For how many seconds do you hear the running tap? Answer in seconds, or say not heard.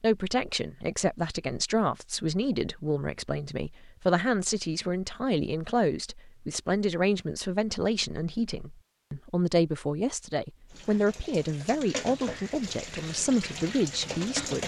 4 s.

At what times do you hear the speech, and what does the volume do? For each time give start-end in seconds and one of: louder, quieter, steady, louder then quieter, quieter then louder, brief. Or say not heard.
0.0-14.6 steady.